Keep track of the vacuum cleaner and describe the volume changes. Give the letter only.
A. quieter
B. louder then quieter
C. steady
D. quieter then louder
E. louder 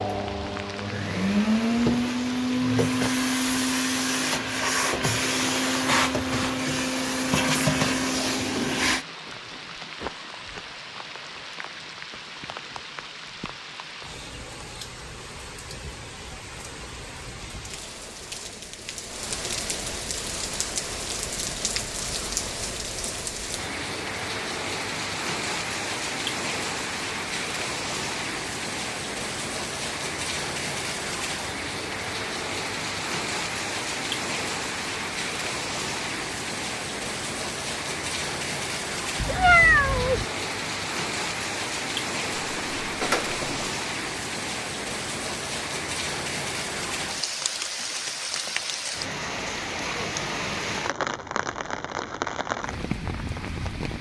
C.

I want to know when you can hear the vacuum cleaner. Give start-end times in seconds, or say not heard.
0.0-9.1.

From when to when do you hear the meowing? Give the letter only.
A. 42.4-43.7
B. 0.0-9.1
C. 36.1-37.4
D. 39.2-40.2
D.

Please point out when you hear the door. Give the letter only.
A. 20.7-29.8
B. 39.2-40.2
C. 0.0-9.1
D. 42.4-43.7
D.